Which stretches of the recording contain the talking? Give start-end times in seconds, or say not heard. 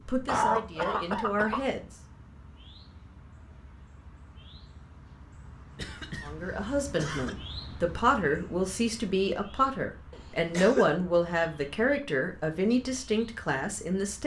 0.1-1.9, 6.2-14.2.